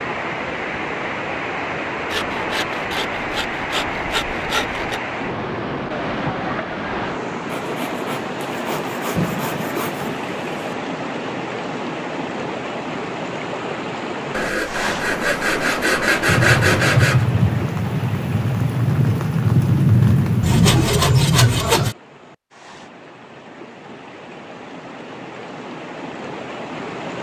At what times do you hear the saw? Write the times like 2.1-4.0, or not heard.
2.1-5.0, 7.5-10.2, 14.3-17.2, 20.4-21.9.